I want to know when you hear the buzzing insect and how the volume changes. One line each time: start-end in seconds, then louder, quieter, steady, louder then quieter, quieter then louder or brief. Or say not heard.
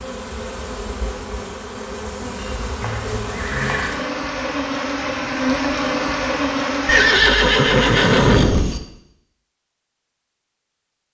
0.0-7.2 louder.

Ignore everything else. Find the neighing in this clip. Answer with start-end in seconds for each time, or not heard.
2.8-4.0, 6.8-8.8.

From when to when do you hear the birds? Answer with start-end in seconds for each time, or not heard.
not heard.